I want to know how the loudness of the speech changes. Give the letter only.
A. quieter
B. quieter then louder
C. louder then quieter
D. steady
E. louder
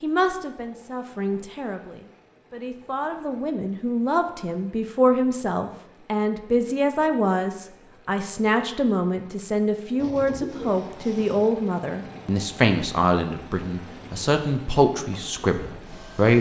E.